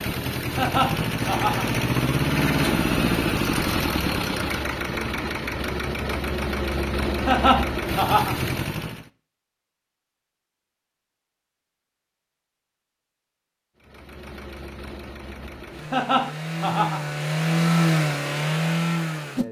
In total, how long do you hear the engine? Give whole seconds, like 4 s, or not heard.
15 s.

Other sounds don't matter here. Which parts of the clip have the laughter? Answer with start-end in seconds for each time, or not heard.
0.6-1.8, 7.2-8.3, 15.9-17.1.